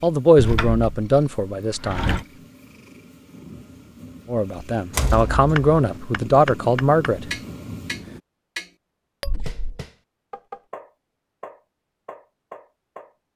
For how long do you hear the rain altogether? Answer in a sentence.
The rain can't be heard in this clip.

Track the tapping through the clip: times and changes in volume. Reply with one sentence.
You can hear the tapping from 5.5 to 13.2 s, getting quieter.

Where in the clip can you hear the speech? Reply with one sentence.
You can hear the speech from 0.0 to 2.1 s and from 4.2 to 7.3 s.